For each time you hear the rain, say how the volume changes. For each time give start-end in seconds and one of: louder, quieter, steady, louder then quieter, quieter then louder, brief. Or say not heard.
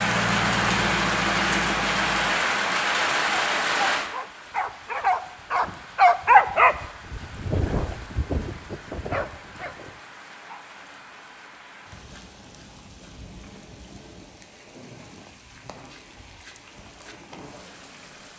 0.0-18.3 quieter.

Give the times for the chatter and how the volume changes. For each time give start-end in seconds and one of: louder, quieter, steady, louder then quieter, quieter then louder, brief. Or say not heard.
not heard.